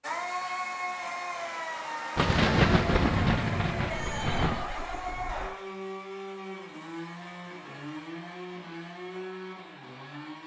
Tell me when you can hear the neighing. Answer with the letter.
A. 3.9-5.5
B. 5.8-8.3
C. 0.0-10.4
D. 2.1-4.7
A.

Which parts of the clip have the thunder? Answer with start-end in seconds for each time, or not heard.
2.1-4.7.